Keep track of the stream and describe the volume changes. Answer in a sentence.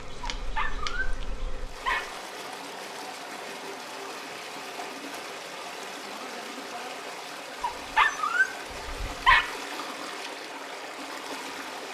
The volume of the stream stays about the same.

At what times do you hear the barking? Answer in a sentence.
You can hear the barking from 0.2 to 2.0 s and from 7.6 to 9.4 s.